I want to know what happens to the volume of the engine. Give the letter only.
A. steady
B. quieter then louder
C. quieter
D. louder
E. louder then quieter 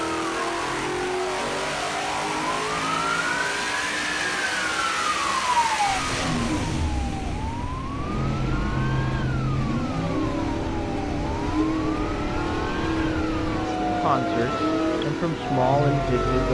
A.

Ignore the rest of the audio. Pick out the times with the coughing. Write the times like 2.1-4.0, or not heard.
not heard.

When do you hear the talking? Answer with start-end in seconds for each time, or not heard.
13.8-16.4.